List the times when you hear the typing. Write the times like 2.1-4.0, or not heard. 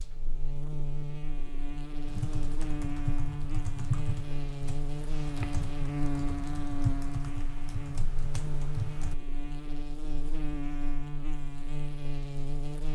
2.0-9.2.